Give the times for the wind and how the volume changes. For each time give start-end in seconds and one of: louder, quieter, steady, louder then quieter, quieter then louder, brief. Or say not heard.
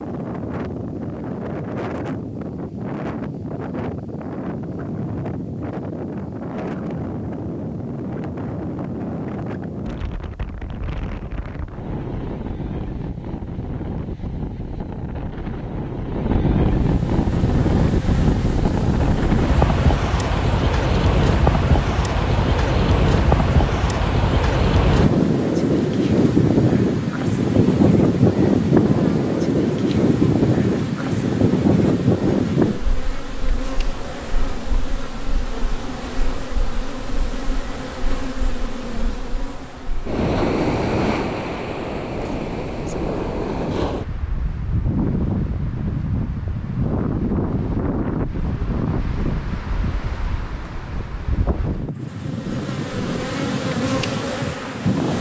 0.0-55.1 louder then quieter.